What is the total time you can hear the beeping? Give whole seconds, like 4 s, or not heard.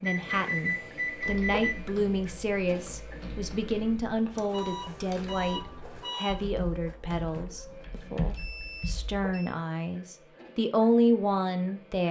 5 s.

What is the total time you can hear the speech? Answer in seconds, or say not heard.
12 s.